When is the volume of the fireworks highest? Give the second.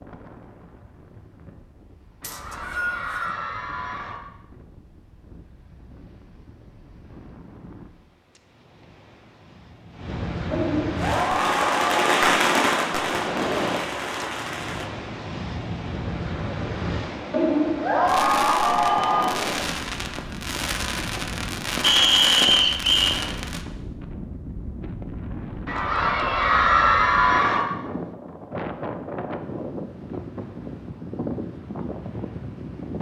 12 s.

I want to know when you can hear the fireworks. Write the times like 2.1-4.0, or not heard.
10.9-14.9, 18.1-23.6.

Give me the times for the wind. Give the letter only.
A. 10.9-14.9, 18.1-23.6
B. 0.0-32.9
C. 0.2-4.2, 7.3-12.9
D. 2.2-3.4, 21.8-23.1
B.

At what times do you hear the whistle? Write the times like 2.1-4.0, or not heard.
2.2-3.4, 21.8-23.1.